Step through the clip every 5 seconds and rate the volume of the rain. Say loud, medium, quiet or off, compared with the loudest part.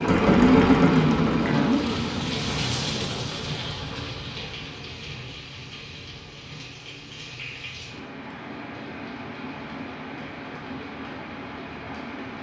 loud, medium, medium.